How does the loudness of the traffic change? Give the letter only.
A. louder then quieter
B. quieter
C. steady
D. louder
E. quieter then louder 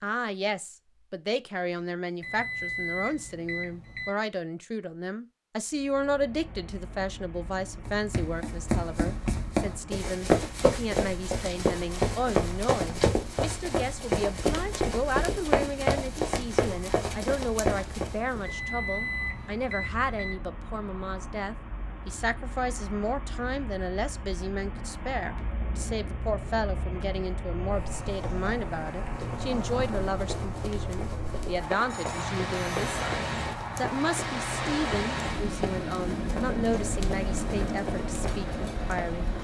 D.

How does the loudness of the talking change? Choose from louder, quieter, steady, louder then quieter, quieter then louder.
steady.